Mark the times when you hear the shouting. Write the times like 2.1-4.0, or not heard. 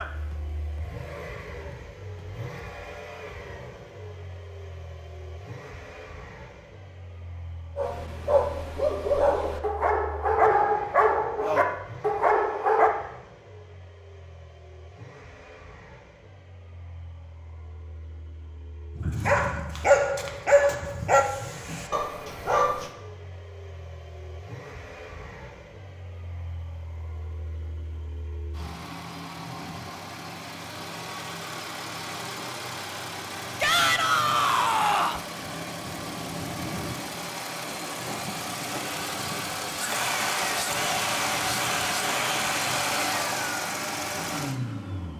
33.6-35.2.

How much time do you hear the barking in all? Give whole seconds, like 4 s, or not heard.
9 s.